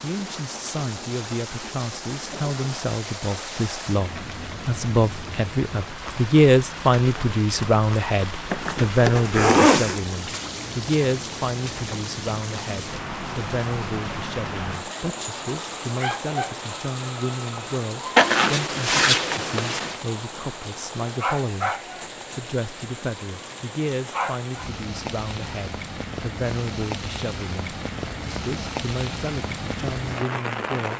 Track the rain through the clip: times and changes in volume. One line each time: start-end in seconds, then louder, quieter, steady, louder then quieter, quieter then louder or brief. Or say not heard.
0.0-30.9 steady.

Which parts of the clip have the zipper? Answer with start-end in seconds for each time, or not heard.
8.5-10.0, 18.1-20.0.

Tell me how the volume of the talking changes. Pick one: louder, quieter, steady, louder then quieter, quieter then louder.
louder then quieter.